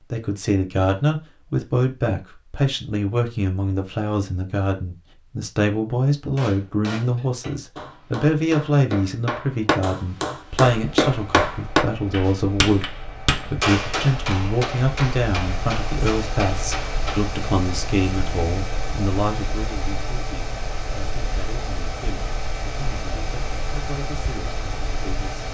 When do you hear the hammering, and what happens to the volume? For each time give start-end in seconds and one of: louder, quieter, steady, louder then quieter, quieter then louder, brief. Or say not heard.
6.3-17.4 louder then quieter.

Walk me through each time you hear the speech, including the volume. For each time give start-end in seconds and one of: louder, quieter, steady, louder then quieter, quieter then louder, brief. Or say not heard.
0.1-25.4 quieter.